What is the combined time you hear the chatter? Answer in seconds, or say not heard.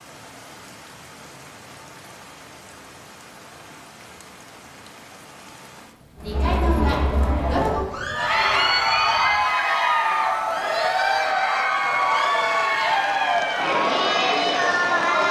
9 s.